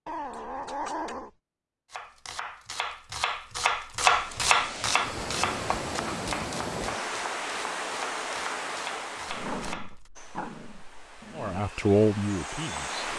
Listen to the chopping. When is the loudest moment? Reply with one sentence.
The loudest moment of the chopping is at 4 seconds.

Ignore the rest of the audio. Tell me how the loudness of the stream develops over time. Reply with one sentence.
The volume of the stream goes down.